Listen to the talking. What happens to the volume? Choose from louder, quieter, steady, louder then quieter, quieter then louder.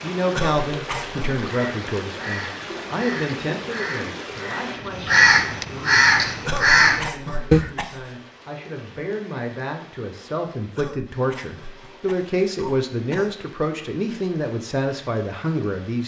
quieter then louder.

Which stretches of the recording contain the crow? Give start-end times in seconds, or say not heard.
1.4-7.7.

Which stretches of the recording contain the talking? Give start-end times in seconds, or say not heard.
0.0-16.0.